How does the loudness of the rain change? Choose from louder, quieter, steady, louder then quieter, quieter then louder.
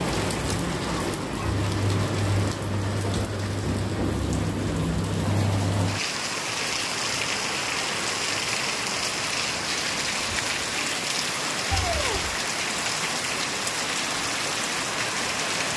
steady.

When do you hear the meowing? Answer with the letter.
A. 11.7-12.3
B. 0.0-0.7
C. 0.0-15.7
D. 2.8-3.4
A.